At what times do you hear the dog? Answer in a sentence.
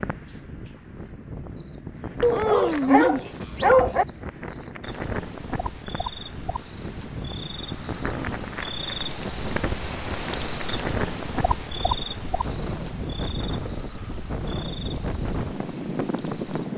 The dog can be heard from 2.2 to 4.0 s.